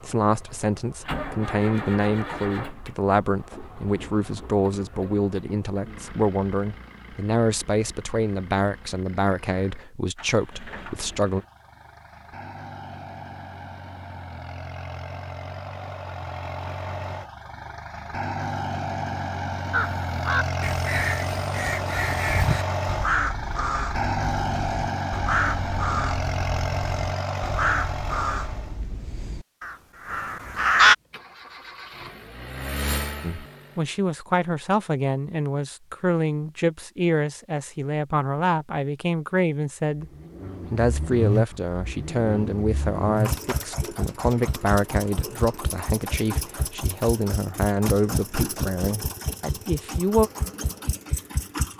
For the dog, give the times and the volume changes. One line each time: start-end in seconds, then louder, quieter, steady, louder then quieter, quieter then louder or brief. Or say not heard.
not heard.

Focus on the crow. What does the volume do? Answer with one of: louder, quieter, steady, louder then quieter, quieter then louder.
louder.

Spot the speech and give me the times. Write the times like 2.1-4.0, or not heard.
0.0-11.4, 33.2-40.1, 40.7-50.3.